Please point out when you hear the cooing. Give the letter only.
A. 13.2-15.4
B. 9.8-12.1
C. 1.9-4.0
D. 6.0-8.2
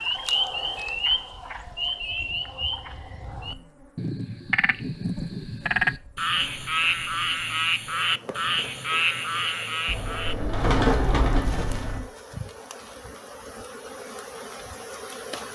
B.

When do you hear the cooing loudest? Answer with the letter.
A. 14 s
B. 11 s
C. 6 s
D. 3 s
B.